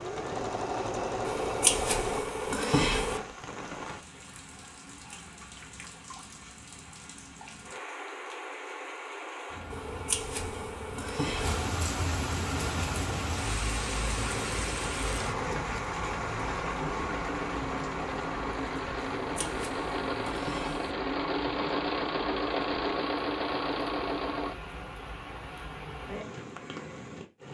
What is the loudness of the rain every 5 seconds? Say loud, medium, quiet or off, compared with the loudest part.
medium, medium, loud, loud, medium, medium.